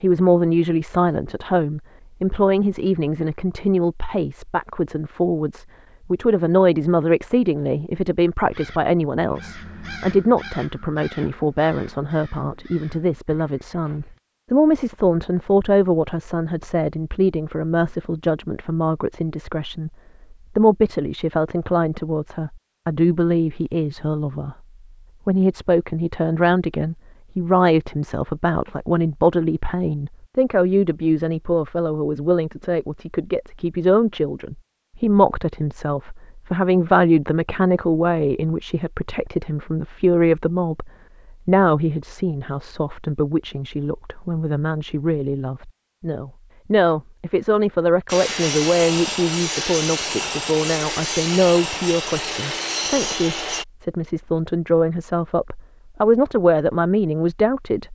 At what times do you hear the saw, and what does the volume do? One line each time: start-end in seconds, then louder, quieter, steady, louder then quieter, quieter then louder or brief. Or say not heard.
48.0-53.6 steady.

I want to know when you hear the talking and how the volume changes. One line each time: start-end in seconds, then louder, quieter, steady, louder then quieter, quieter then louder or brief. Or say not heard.
0.0-24.6 steady
25.2-57.8 steady.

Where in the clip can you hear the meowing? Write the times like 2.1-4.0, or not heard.
not heard.